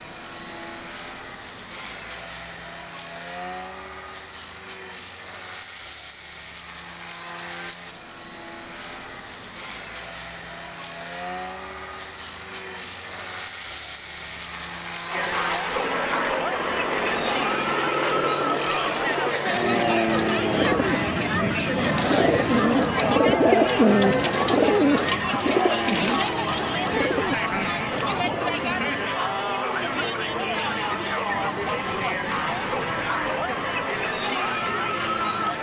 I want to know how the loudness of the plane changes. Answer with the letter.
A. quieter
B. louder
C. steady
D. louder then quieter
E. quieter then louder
D.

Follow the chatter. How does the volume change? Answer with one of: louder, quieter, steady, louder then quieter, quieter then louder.
steady.